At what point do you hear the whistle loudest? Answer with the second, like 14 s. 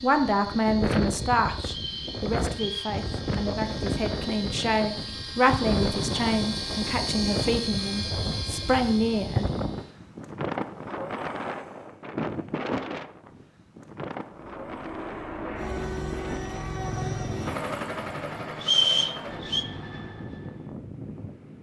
19 s.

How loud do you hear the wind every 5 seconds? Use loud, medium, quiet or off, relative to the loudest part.
loud, loud, loud, medium, medium.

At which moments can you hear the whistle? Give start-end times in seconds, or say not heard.
1.6-3.0, 18.6-19.6.